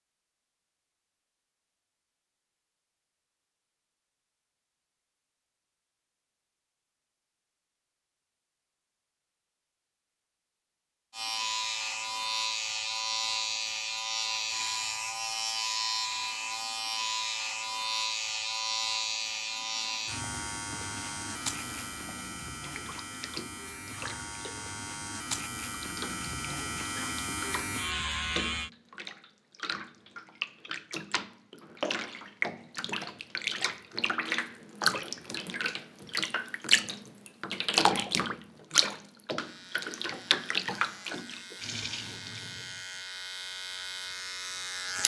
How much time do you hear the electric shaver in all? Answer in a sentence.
The electric shaver can be heard for 23 seconds in total.